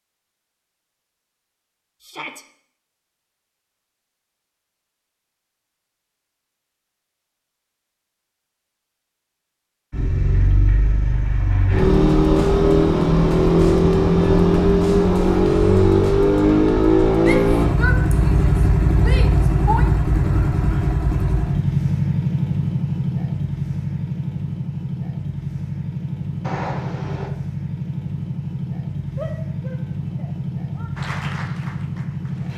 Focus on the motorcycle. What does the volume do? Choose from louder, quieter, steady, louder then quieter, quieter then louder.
quieter.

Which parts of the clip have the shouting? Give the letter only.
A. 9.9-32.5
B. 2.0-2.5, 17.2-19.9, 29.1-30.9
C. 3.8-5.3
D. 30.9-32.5
B.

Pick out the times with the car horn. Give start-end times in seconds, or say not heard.
26.4-27.3.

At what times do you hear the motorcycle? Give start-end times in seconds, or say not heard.
9.9-32.5.